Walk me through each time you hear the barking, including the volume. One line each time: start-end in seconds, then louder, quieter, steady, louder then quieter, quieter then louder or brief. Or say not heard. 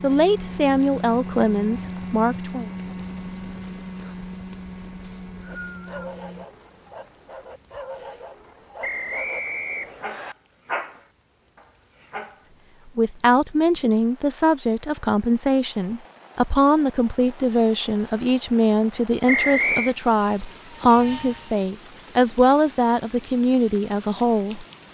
5.5-12.4 louder then quieter.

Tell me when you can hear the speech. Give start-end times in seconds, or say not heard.
0.0-2.7, 12.9-24.6.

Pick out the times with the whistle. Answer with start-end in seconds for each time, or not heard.
5.0-6.0, 8.8-10.3, 19.2-19.9.